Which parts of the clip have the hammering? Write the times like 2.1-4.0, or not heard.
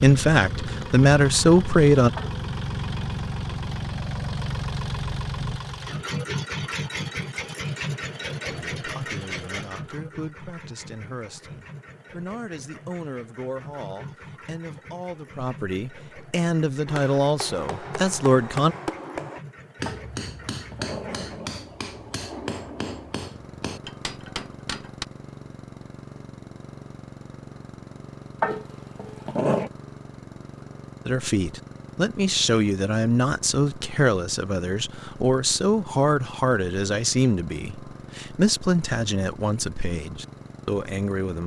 16.9-25.1.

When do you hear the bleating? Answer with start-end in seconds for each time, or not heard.
not heard.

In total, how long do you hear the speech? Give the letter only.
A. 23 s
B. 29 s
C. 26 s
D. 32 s
A.